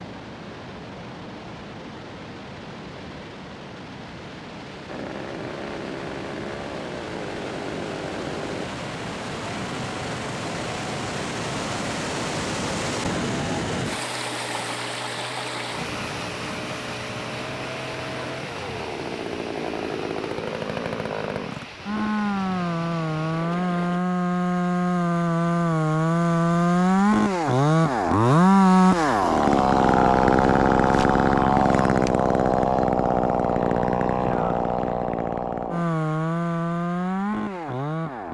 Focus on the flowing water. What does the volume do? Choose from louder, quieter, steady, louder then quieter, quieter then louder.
louder then quieter.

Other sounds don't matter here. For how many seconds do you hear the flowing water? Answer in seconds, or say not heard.
24 s.